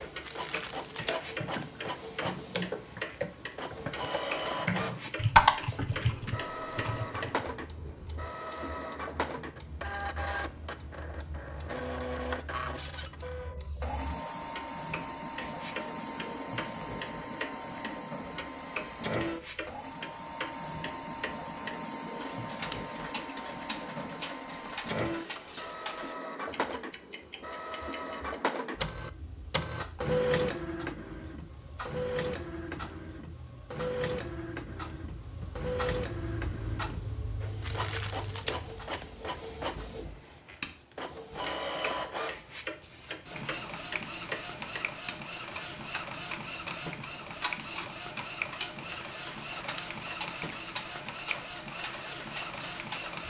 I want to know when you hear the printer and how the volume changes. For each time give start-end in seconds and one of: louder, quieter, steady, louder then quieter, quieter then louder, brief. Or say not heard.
0.0-53.2 steady.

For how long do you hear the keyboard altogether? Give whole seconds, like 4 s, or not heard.
7 s.